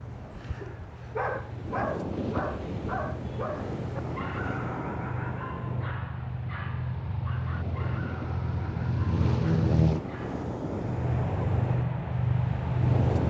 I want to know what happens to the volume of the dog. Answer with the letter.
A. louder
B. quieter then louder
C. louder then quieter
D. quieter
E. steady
D.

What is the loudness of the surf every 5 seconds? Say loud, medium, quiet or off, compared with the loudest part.
loud, medium, loud.